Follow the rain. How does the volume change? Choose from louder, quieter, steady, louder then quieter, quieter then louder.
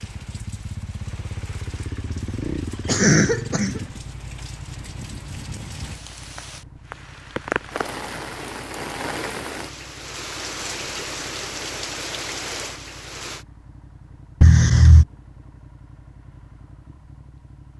louder.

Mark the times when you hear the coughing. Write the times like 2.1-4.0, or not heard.
2.0-3.8, 14.4-15.1.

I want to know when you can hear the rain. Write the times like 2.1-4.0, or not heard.
0.0-13.4.